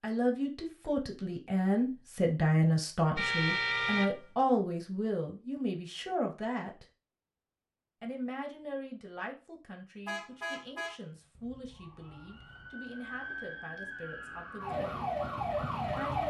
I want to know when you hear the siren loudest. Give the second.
16 s.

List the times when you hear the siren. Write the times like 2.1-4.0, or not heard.
11.7-16.2.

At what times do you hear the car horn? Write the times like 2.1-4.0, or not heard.
3.1-4.3, 10.1-12.7.